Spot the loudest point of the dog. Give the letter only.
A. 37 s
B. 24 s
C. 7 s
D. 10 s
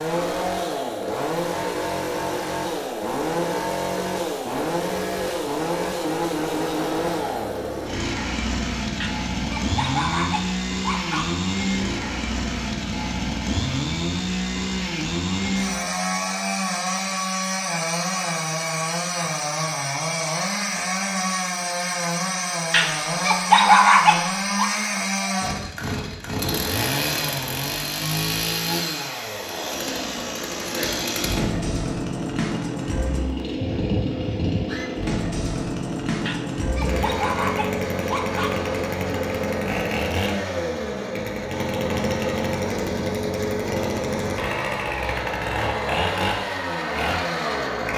B.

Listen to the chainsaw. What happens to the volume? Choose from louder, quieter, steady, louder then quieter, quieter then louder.
steady.